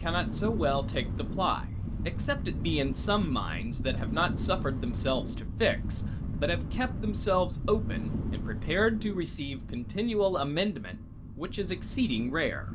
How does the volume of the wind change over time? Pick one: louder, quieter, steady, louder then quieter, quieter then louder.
quieter.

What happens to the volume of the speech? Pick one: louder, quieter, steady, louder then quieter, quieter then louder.
steady.